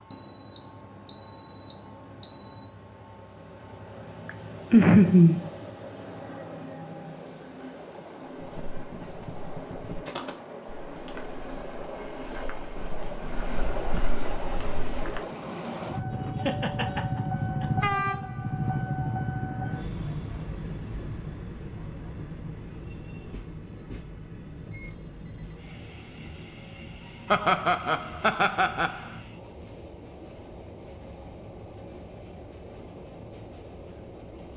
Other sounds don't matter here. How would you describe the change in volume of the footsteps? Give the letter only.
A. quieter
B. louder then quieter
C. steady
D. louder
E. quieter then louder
E.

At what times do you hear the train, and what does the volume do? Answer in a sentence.
The train can be heard from 0.0 to 34.5 s, getting louder then quieter.